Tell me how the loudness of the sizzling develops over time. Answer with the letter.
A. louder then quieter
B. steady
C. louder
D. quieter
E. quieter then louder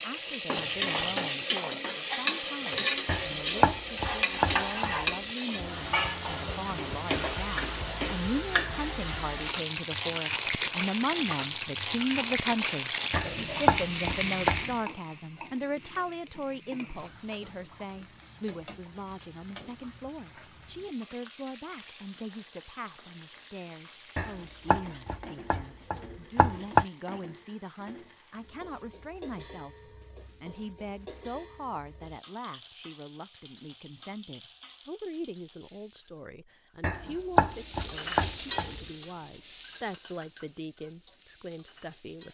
E.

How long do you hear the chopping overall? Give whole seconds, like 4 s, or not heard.
8 s.